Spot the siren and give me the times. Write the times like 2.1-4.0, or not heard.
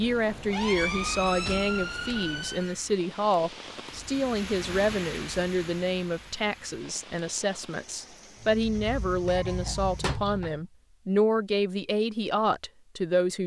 0.0-2.8, 8.4-10.7.